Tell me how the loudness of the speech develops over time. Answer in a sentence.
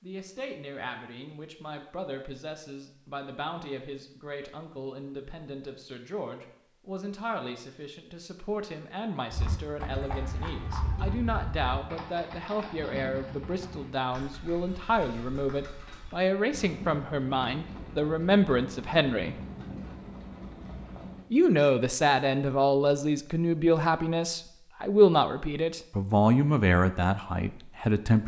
The volume of the speech goes up.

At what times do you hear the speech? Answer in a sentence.
You can hear the speech from 0.0 to 19.4 s and from 21.3 to 28.2 s.